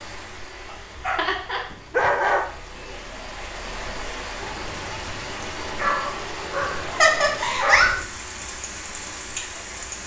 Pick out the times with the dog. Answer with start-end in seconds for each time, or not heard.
0.7-2.5, 5.8-8.1.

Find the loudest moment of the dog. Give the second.
2 s.